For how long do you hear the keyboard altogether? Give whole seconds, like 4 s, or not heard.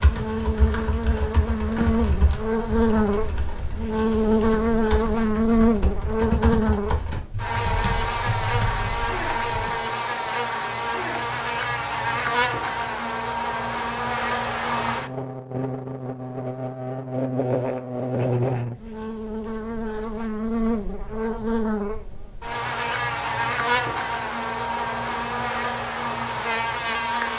10 s.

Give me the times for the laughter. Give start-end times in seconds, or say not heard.
not heard.